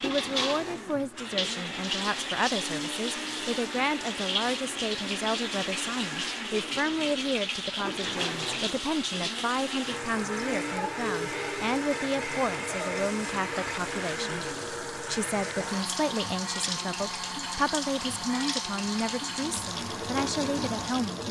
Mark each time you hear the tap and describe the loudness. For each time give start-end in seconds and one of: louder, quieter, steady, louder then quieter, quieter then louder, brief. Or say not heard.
0.0-21.2 steady.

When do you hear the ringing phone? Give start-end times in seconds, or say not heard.
not heard.